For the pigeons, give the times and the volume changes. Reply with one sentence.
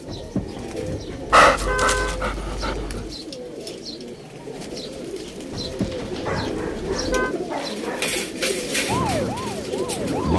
The pigeons can be heard from 0.0 to 10.3 s, getting louder.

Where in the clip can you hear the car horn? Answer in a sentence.
You can hear the car horn from 0.1 to 2.1 s and from 5.5 to 7.3 s.